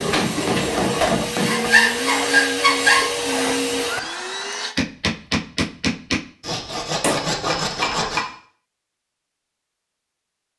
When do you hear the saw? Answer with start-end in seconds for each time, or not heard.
1.4-3.1, 6.4-8.2.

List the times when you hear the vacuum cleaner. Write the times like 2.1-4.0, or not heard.
0.0-4.8.